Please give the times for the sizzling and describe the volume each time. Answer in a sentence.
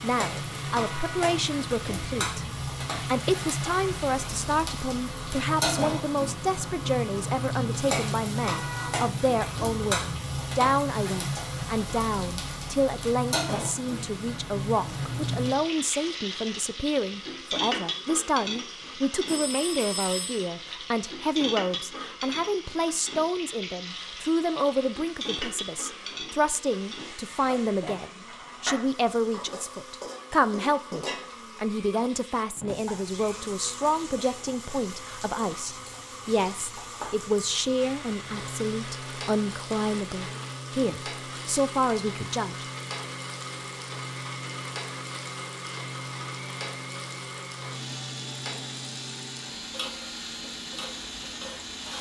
You can hear the sizzling from 0.0 to 51.9 s, getting quieter.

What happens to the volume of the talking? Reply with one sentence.
The loudness of the talking stays about the same.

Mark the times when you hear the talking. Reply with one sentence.
You can hear the talking from 0.0 to 42.6 s.